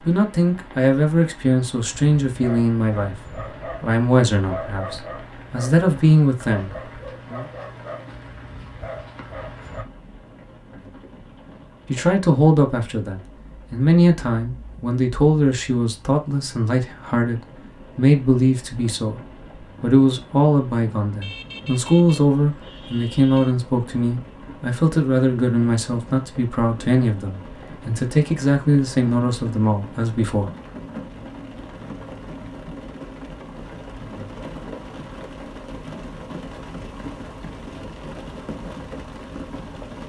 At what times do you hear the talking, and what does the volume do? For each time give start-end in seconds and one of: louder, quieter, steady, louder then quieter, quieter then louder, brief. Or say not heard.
0.0-7.5 quieter then louder
11.8-30.5 steady.